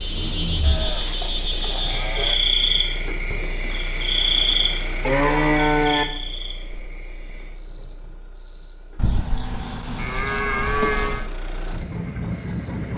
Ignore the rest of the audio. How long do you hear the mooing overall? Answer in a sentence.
You can hear the mooing for 5 seconds altogether.